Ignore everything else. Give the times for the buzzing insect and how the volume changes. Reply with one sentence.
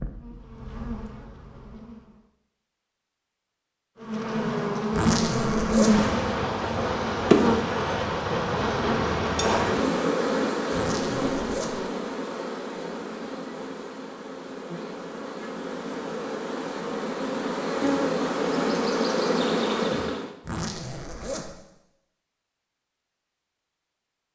You can hear the buzzing insect briefly from 0.0 to 2.2 s; and from 4.0 to 20.3 s, getting quieter then louder.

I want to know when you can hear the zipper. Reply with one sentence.
You can hear the zipper from 4.9 to 6.1 s, from 10.7 to 11.8 s and from 20.4 to 21.6 s.